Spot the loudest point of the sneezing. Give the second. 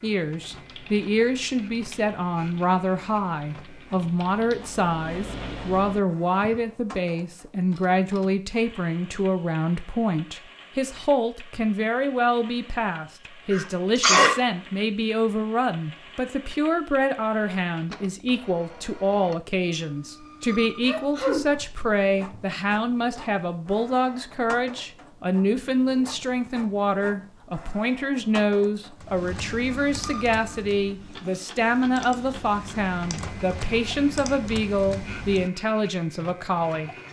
14 s.